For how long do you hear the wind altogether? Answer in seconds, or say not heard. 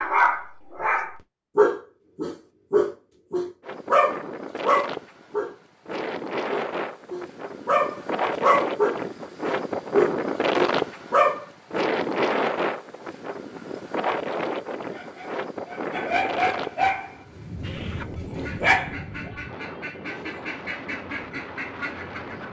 19 s.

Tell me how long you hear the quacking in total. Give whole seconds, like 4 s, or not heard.
5 s.